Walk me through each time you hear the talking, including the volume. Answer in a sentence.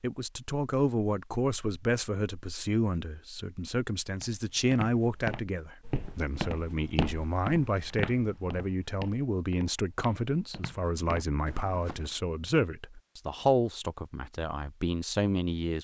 You can hear the talking from 0.0 to 15.7 s, at a steady volume.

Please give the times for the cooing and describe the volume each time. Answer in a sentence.
You can't hear the cooing here.